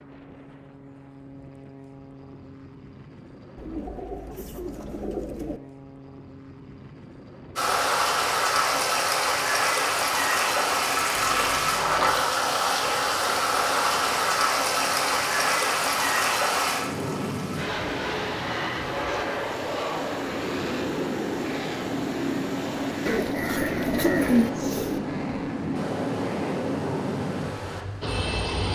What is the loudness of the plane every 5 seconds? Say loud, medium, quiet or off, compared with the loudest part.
quiet, quiet, quiet, loud, loud, loud.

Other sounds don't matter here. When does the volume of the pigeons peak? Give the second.
24 s.